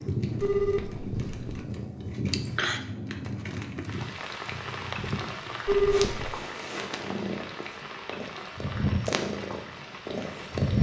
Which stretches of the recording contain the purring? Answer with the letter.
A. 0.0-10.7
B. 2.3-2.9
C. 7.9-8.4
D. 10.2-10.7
A.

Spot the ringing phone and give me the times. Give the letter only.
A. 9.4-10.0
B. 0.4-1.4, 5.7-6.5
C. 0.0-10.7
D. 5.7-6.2
B.